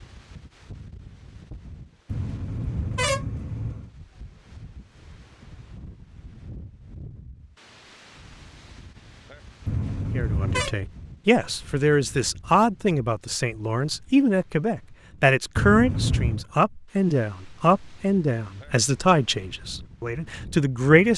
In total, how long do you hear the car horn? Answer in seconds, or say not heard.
4 s.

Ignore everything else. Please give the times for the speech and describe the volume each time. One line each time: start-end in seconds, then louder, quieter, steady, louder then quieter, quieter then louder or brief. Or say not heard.
10.2-21.1 steady.